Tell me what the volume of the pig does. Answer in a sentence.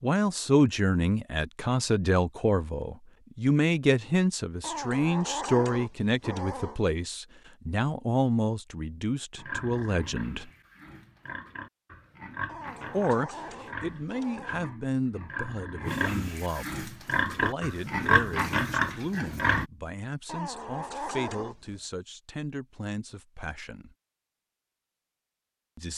The loudness of the pig goes up.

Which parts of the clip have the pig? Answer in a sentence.
You can hear the pig from 9.3 to 19.6 s.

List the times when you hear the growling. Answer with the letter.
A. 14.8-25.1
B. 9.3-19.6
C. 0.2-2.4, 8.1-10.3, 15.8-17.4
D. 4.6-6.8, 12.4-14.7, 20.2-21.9
D.